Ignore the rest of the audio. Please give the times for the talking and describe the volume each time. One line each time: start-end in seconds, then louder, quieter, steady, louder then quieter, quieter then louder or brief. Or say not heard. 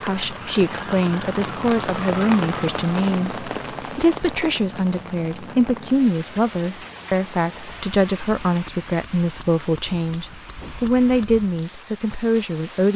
0.0-12.9 steady.